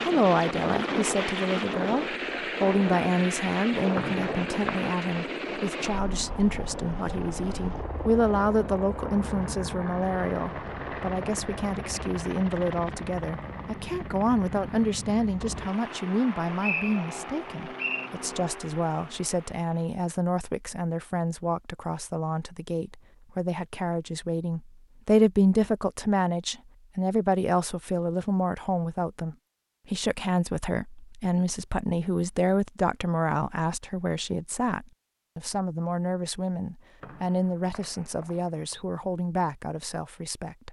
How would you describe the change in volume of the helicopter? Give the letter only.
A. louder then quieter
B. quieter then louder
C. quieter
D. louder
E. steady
C.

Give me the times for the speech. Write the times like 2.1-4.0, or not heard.
0.0-40.6.